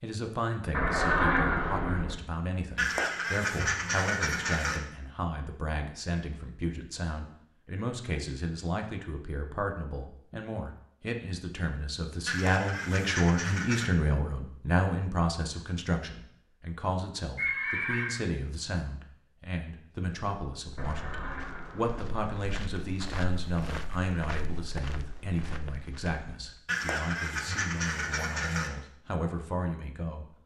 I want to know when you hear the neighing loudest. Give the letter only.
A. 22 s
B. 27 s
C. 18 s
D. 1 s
D.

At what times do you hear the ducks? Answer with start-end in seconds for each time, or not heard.
2.8-4.8, 12.2-13.9, 26.6-28.7.